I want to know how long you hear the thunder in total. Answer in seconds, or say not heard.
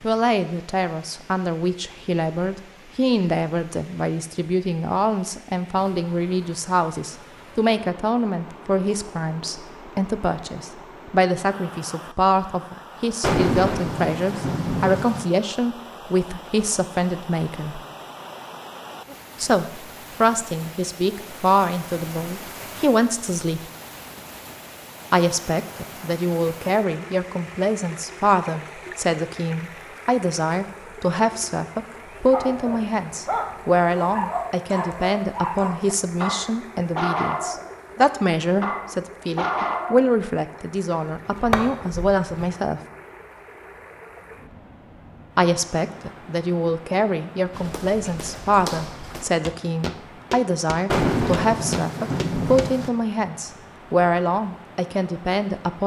4 s.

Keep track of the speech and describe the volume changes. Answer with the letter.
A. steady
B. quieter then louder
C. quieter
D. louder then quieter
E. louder
A.